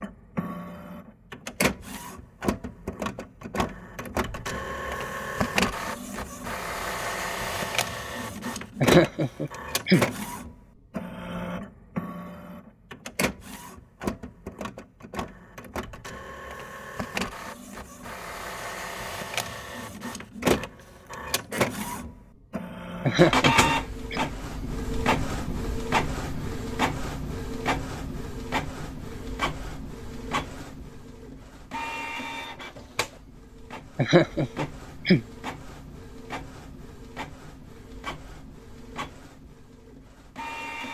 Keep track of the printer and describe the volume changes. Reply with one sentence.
The loudness of the printer goes down.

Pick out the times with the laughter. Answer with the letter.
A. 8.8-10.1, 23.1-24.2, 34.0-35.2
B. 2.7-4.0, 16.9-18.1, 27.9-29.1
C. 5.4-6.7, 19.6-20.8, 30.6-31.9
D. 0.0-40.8
A.